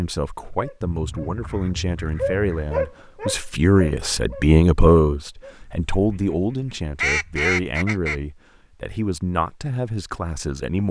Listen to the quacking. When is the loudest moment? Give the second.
7 s.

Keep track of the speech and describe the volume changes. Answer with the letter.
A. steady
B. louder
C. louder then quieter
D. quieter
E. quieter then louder
C.